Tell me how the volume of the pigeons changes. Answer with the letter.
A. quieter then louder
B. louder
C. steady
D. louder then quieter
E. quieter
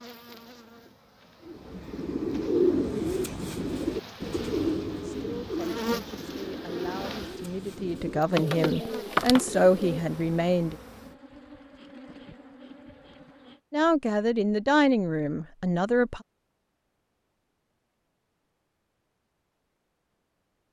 A.